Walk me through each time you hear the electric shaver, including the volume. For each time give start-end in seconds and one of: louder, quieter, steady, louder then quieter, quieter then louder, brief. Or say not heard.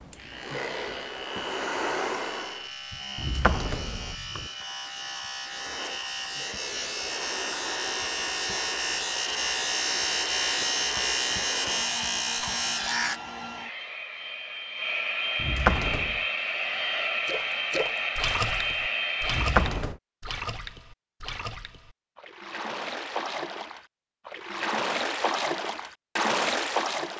0.0-13.2 louder.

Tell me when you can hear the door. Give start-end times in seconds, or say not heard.
3.1-4.5, 15.3-16.2, 19.2-19.9.